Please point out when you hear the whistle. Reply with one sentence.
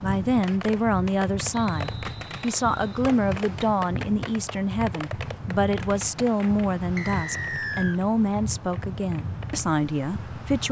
You can hear the whistle from 1.5 to 3.0 s and from 7.0 to 8.0 s.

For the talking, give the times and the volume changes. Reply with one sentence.
The talking can be heard from 0.0 to 10.6 s, at a steady volume.